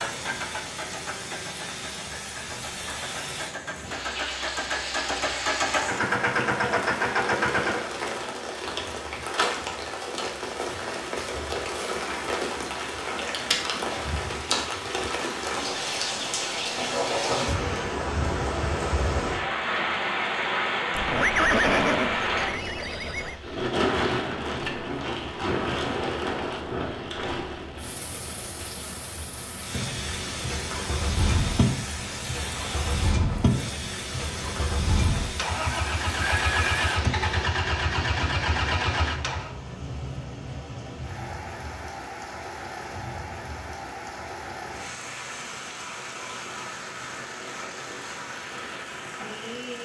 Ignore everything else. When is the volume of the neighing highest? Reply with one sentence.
The loudest moment of the neighing is at 22 seconds.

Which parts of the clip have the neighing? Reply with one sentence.
You can hear the neighing from 20.9 to 23.4 s and from 36.2 to 36.8 s.